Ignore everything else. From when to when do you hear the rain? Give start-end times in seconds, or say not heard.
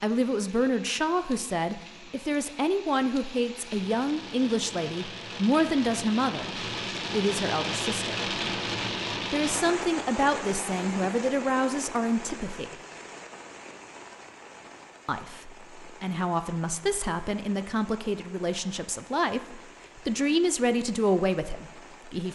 0.0-22.3.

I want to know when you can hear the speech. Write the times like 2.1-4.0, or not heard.
0.0-8.2, 9.3-12.8, 15.1-22.3.